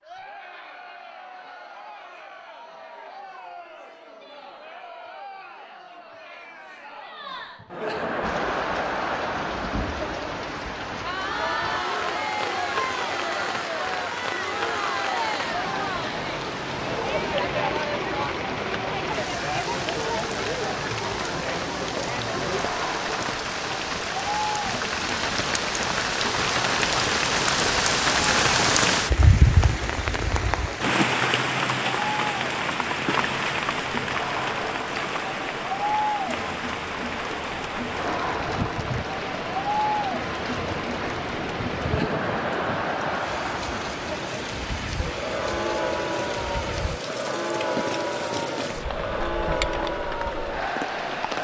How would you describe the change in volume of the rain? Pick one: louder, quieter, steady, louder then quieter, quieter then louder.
louder then quieter.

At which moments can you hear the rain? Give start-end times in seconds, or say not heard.
8.2-51.3.